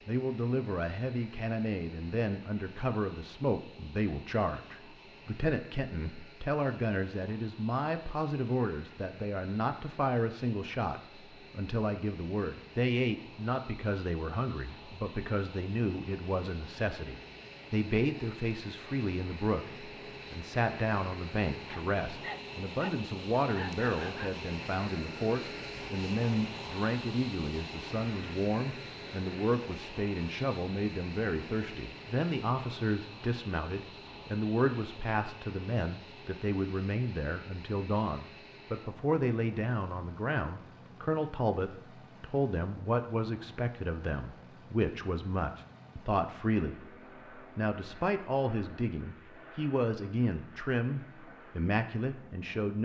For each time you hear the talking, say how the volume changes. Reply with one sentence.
You can hear the talking from 0.1 to 52.8 s, at a steady volume.